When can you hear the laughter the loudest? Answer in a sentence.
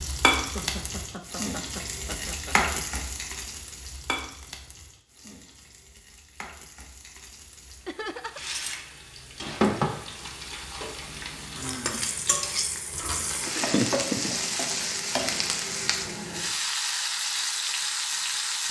The volume of the laughter peaks at 14 seconds.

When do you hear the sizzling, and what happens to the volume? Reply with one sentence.
You can hear the sizzling from 0.0 to 18.6 s, getting quieter then louder.